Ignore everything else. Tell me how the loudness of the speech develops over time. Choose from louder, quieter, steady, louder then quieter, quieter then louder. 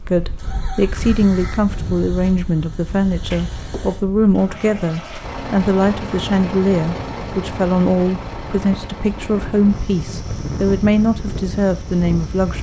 steady.